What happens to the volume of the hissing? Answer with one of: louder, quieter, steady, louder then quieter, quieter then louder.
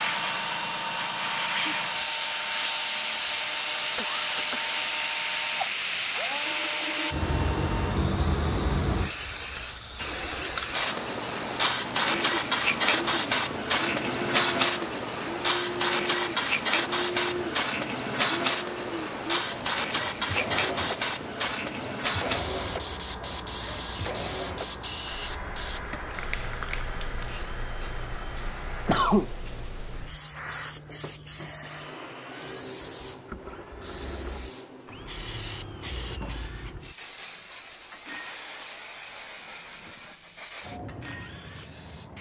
quieter.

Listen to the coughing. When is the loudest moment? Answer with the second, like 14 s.
29 s.